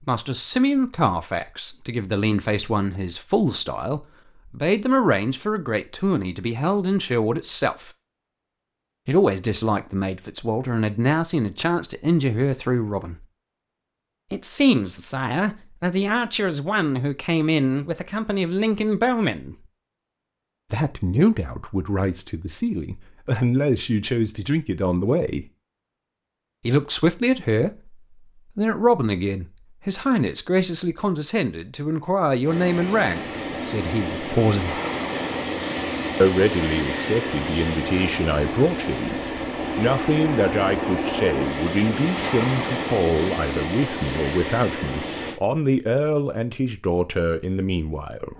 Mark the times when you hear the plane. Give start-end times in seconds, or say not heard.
32.4-45.4.